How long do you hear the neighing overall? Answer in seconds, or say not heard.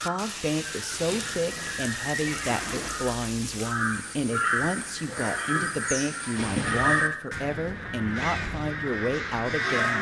3 s.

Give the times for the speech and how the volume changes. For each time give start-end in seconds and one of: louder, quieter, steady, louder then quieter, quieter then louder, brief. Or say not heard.
0.0-9.9 steady.